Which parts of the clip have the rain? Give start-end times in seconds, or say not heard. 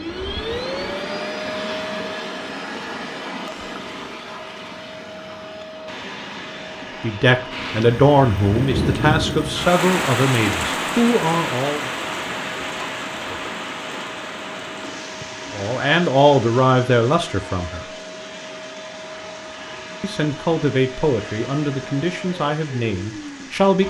7.5-23.8.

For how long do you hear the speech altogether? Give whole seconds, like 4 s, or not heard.
11 s.